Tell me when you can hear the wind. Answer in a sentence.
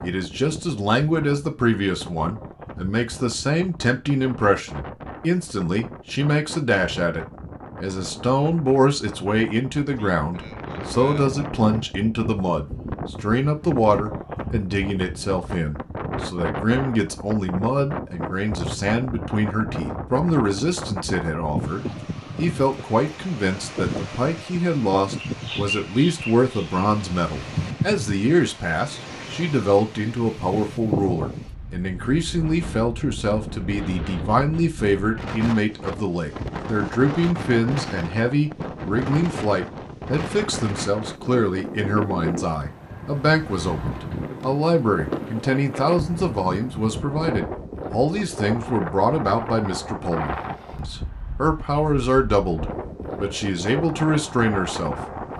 The wind can be heard from 0.0 to 55.3 s.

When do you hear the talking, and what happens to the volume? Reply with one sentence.
You can hear the talking from 0.0 to 55.2 s, at a steady volume.